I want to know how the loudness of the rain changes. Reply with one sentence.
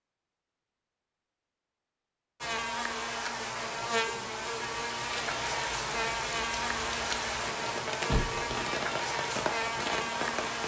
The loudness of the rain stays about the same.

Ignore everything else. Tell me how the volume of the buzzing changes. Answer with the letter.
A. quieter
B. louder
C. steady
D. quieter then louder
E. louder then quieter
C.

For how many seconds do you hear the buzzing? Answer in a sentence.
You can hear the buzzing for 8 seconds altogether.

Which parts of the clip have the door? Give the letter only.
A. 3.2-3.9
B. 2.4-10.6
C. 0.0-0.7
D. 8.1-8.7
D.